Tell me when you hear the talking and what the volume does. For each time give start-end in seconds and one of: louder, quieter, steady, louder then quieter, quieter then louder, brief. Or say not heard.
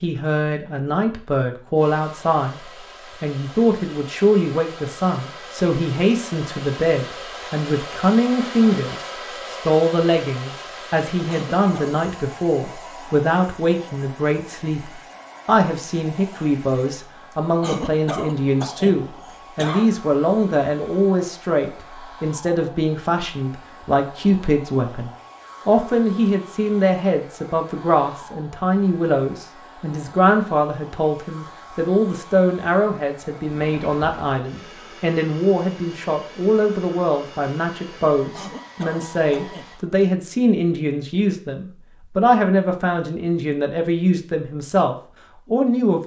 0.0-46.0 steady.